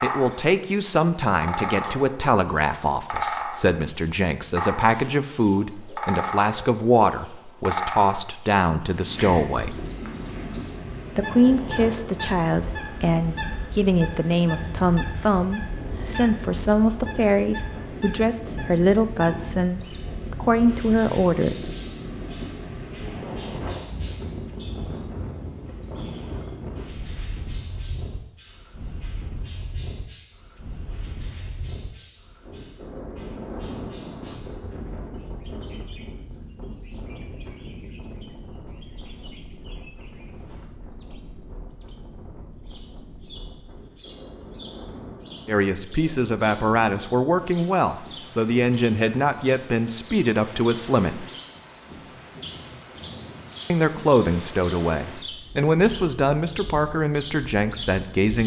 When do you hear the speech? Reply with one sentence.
The speech can be heard from 0.0 to 9.8 s, from 11.2 to 21.8 s, from 45.5 to 51.2 s and from 53.7 to 58.4 s.